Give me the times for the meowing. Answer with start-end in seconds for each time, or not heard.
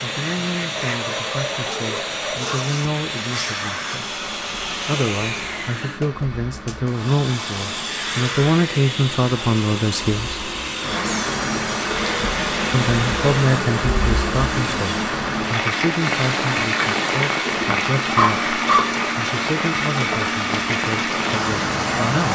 not heard.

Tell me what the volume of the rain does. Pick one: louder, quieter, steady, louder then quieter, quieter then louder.
louder.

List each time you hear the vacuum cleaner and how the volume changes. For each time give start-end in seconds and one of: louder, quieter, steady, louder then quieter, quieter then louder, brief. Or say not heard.
0.0-22.3 steady.